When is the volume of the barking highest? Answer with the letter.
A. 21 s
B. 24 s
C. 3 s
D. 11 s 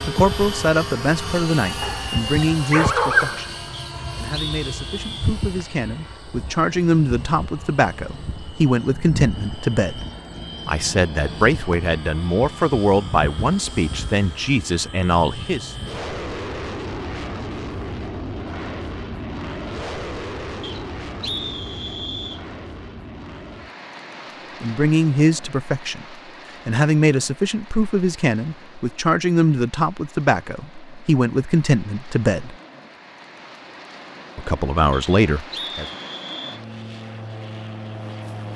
C.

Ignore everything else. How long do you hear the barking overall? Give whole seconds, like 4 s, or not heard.
2 s.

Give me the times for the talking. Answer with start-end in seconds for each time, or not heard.
0.1-10.1, 10.7-15.8, 24.6-32.5, 34.4-35.9.